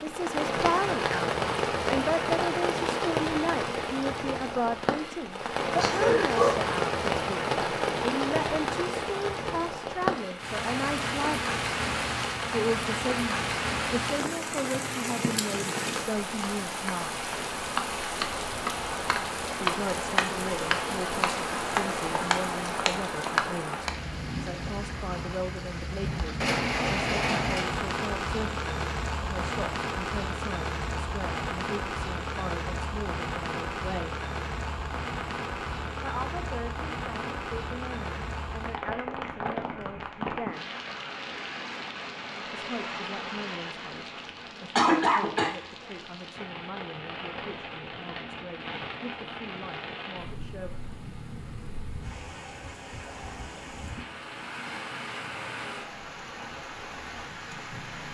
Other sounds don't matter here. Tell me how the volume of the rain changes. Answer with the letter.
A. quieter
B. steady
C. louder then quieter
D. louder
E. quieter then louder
A.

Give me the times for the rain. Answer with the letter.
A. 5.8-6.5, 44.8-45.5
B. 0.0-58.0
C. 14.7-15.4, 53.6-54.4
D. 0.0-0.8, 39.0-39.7
B.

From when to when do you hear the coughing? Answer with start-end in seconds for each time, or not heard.
5.8-6.5, 44.8-45.5.